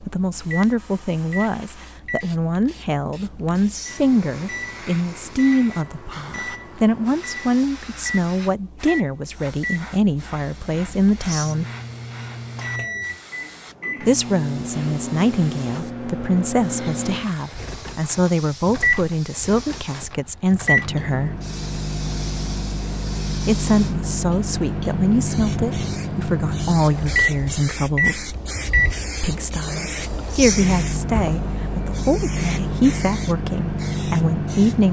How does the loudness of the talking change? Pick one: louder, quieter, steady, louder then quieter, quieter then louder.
steady.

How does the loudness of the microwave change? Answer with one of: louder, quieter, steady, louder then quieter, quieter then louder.
louder.